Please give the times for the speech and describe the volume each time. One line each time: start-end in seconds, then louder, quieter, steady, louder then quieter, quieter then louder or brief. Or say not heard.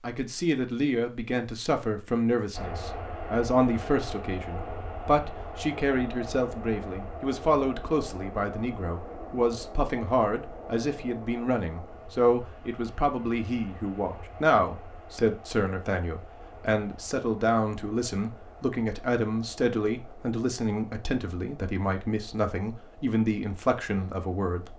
0.0-24.7 steady.